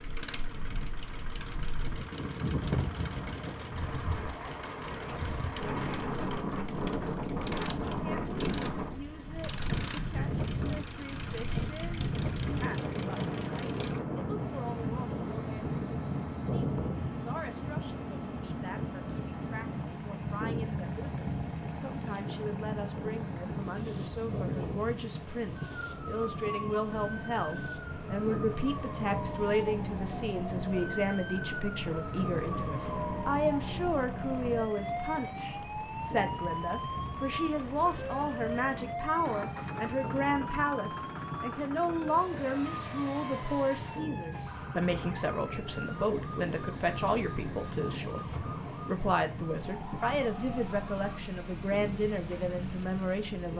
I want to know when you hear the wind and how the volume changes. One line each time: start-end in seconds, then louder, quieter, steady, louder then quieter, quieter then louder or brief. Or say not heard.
0.0-53.5 quieter.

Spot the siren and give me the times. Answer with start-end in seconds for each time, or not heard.
25.6-51.2.